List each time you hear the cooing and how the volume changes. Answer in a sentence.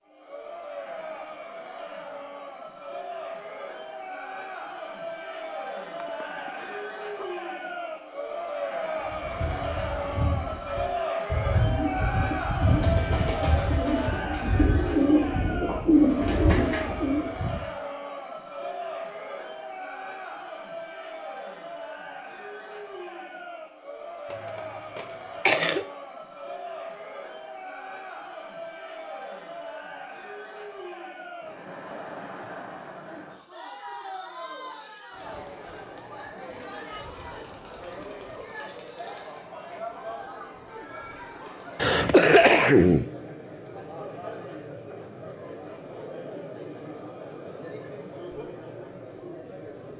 You can hear the cooing from 9.0 to 17.6 s, getting louder.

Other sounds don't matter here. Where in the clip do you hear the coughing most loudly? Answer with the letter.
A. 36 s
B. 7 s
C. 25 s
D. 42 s
D.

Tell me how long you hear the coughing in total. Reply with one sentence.
You can hear the coughing for 4 seconds altogether.